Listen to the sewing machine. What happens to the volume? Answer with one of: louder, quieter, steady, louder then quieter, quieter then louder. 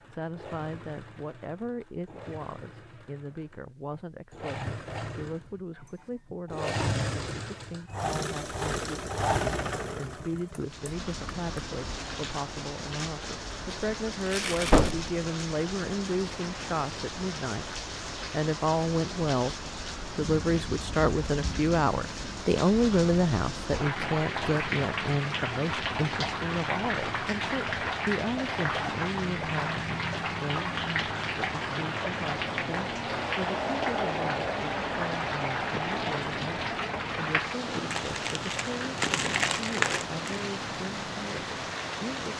louder then quieter.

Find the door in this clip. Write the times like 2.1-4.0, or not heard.
14.7-15.1.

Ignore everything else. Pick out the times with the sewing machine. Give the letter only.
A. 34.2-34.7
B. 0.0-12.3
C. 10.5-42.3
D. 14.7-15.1
B.